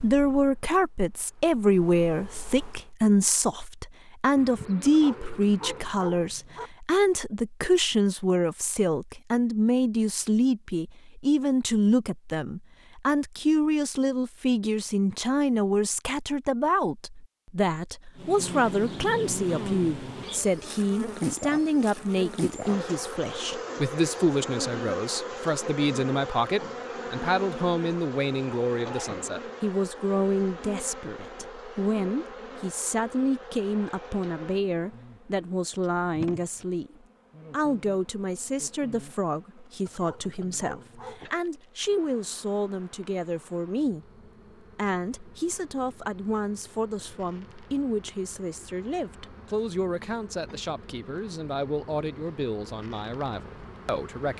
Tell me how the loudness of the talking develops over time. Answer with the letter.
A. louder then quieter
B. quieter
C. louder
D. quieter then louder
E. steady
B.